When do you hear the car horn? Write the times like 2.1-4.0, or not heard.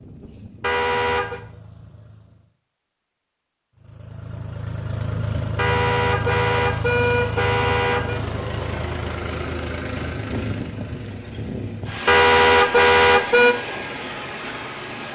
0.6-1.4, 5.5-8.2, 12.1-13.6.